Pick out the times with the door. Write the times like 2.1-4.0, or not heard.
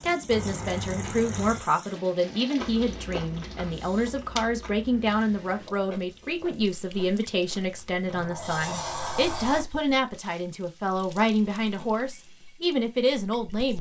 0.3-1.6, 8.1-9.7.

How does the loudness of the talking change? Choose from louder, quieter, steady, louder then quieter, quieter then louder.
steady.